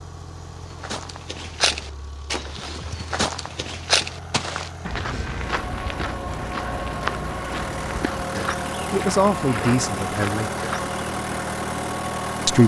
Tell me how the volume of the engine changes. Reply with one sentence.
The loudness of the engine goes up.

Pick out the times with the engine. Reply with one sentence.
The engine can be heard from 0.0 to 12.6 s.